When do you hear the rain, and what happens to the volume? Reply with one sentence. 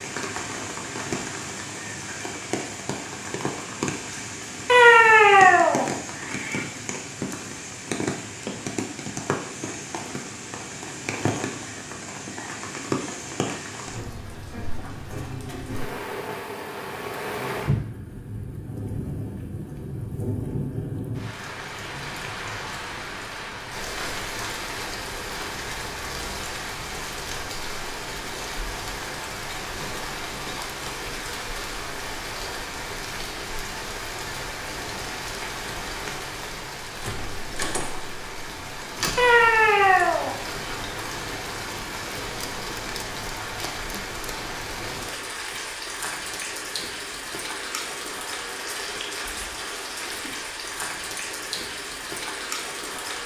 The rain can be heard from 0.0 to 53.2 s, at a steady volume.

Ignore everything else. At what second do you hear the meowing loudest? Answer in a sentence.
The volume of the meowing peaks at 5 seconds.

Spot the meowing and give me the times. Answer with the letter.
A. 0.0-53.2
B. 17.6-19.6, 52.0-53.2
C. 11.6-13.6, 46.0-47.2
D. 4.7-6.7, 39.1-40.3
D.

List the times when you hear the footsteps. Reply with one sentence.
You can't hear the footsteps here.